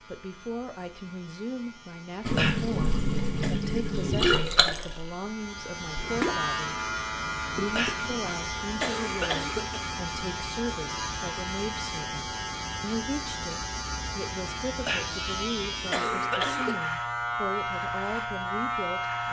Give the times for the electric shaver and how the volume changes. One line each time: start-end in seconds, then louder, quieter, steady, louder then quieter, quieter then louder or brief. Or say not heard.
0.0-19.2 louder.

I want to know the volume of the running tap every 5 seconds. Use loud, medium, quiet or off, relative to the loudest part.
loud, medium, off, off.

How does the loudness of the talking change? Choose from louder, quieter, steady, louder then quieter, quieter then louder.
steady.